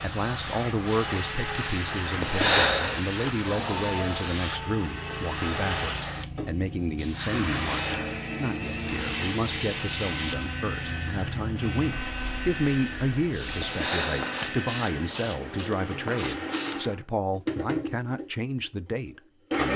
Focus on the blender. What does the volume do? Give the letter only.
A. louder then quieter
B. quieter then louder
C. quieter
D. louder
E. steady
E.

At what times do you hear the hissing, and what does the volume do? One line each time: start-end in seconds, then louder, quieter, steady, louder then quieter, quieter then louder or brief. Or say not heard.
0.0-16.8 steady.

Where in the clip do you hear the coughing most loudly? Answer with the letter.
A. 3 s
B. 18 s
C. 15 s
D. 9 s
A.